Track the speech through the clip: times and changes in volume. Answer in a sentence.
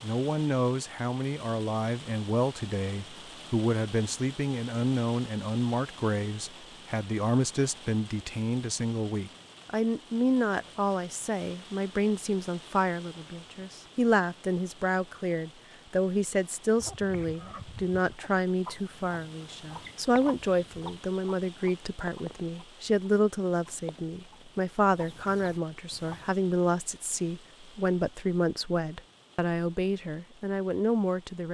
The speech can be heard from 0.0 to 31.4 s, at a steady volume.